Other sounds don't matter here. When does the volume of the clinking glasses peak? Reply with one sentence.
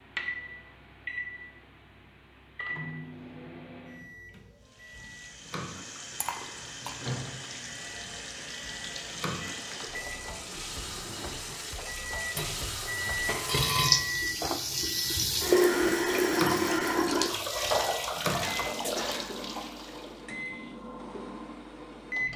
The loudest moment of the clinking glasses is at 14 seconds.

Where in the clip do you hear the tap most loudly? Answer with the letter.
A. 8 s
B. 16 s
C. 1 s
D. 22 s
B.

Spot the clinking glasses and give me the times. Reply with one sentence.
The clinking glasses can be heard from 6.2 to 7.0 s and from 12.3 to 14.1 s.